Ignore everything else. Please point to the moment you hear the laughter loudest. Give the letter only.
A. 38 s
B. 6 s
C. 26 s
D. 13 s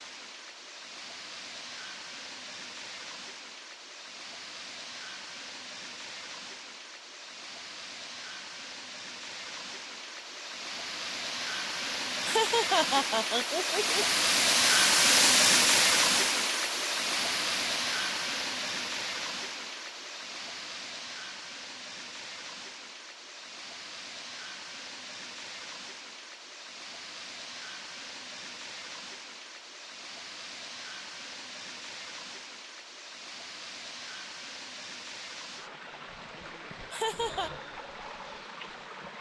D.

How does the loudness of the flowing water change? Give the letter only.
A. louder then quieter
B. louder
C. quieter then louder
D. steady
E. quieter
A.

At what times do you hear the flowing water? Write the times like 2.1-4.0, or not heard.
0.0-39.1.